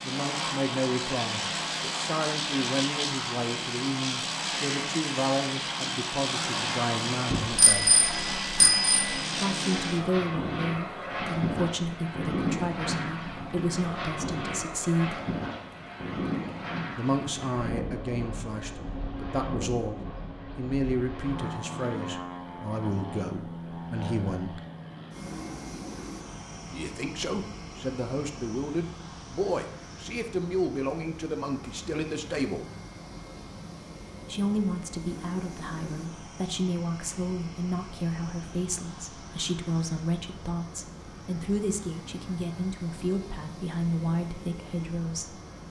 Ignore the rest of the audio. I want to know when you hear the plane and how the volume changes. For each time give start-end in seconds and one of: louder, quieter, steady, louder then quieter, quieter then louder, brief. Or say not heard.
0.0-45.6 quieter.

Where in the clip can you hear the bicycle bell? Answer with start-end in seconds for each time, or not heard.
7.3-9.2.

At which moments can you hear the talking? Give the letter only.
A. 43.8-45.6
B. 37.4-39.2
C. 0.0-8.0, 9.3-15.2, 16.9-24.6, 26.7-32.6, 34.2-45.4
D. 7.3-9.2
C.